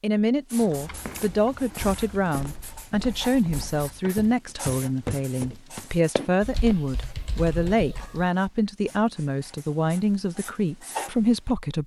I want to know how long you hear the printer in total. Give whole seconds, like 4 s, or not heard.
not heard.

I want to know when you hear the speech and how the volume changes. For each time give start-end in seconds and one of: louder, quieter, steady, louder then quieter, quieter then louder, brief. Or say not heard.
0.0-11.8 steady.